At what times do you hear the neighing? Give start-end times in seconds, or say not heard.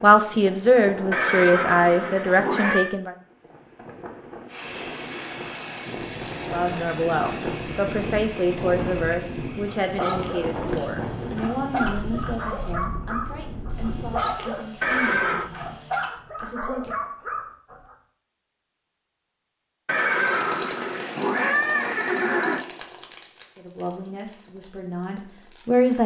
1.1-3.0, 14.8-15.5, 19.9-22.6.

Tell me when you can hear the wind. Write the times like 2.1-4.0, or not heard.
0.0-14.4.